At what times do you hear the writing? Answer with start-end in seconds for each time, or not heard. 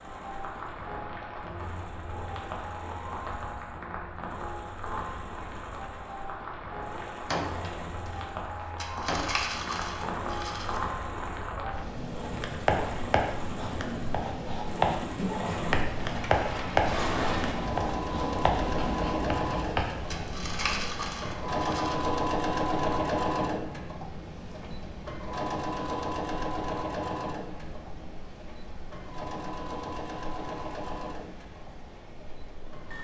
12.3-20.0.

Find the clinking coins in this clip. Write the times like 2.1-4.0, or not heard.
8.8-10.8, 20.1-21.9.